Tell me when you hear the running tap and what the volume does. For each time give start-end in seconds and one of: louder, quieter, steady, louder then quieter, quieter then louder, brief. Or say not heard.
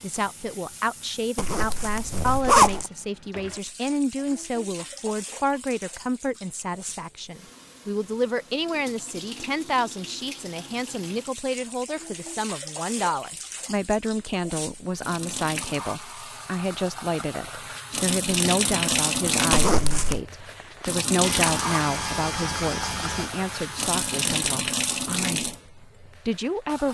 0.0-26.9 louder.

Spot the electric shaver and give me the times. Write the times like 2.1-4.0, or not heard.
21.2-24.3.